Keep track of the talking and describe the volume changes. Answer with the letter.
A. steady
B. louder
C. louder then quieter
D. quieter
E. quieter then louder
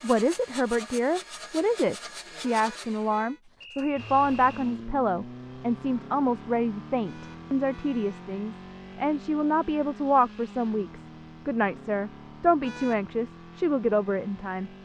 A.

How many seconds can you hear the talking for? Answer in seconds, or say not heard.
15 s.